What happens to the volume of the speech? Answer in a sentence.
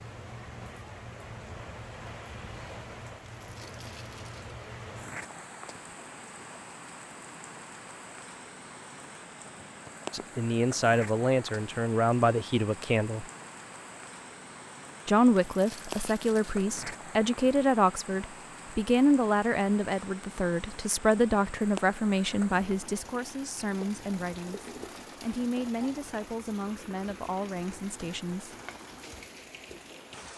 The volume of the speech goes down.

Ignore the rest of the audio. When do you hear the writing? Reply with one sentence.
The writing can't be heard in this clip.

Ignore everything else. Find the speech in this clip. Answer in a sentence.
The speech can be heard from 10.1 to 13.2 s and from 15.1 to 28.6 s.